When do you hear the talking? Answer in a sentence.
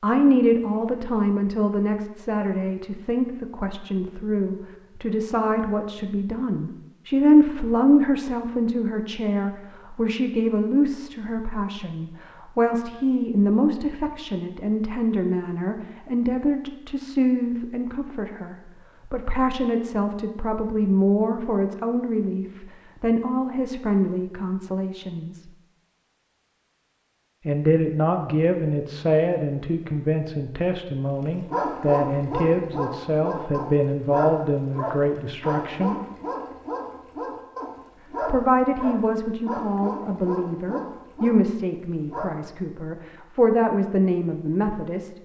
You can hear the talking from 0.0 to 25.4 s, from 27.4 to 36.0 s and from 38.2 to 45.1 s.